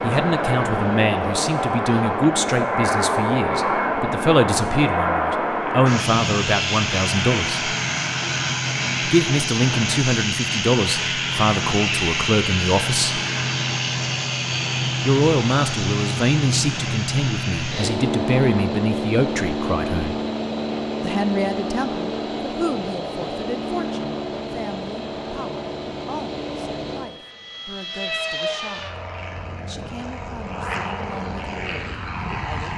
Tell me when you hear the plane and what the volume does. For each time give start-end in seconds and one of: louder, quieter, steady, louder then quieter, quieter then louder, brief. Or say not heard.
0.0-32.7 quieter.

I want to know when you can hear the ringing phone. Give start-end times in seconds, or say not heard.
not heard.